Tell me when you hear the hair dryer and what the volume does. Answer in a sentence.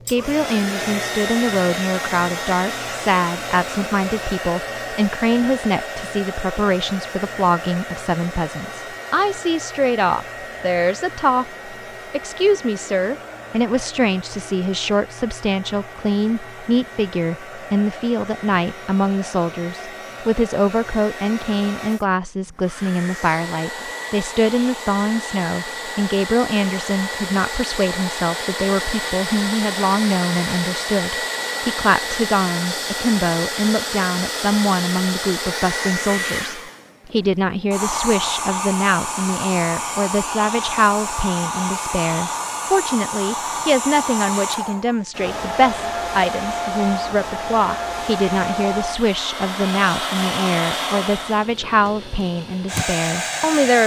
You can hear the hair dryer from 0.0 to 53.8 s, getting quieter then louder.